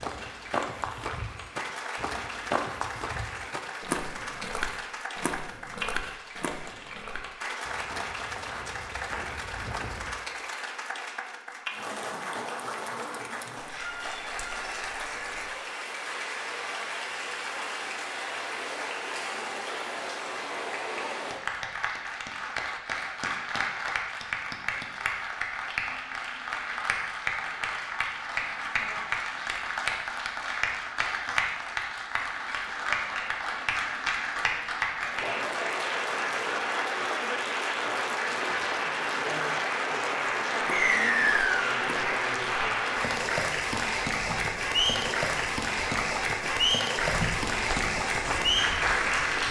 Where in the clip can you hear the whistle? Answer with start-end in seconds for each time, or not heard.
40.7-41.6.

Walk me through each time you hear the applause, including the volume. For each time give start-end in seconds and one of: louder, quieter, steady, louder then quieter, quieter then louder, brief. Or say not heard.
0.0-49.4 louder.